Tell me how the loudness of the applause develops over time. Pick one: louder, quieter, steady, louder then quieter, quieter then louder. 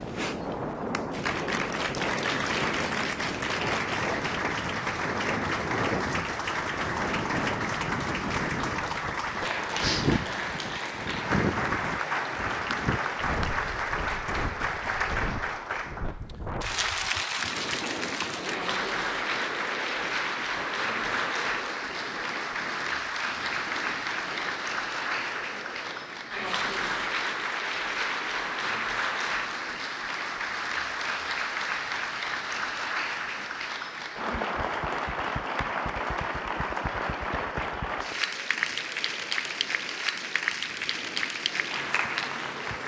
steady.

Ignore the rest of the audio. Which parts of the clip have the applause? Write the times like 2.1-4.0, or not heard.
0.0-42.8.